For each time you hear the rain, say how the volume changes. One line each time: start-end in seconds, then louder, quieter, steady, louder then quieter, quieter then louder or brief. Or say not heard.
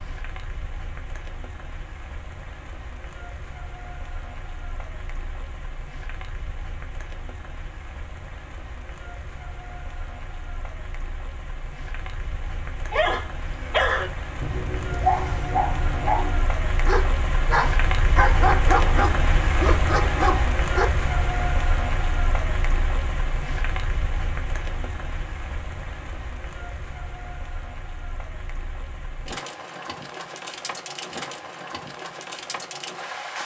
0.0-33.4 louder then quieter.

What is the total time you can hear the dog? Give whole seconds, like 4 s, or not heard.
8 s.